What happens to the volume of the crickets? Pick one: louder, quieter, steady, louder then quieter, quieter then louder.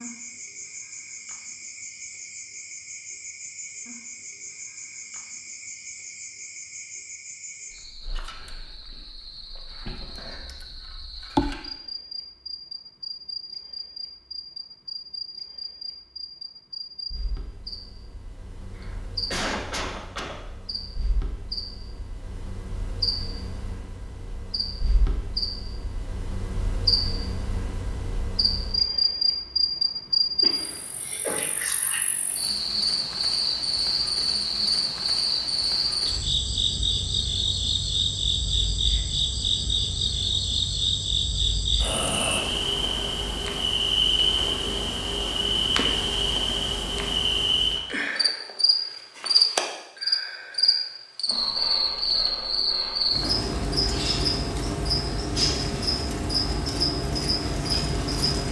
louder.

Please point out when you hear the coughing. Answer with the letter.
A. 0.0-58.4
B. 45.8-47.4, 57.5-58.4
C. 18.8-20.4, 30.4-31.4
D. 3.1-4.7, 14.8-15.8
C.